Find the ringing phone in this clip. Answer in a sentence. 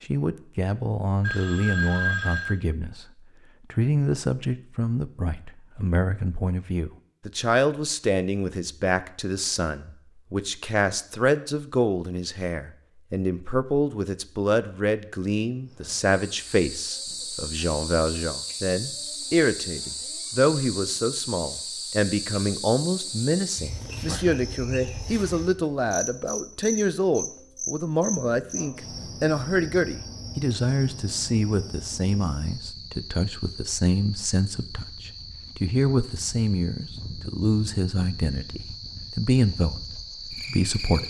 You can hear the ringing phone from 1.2 to 2.5 s.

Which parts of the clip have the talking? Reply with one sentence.
The talking can be heard from 0.0 to 3.0 s and from 3.7 to 41.0 s.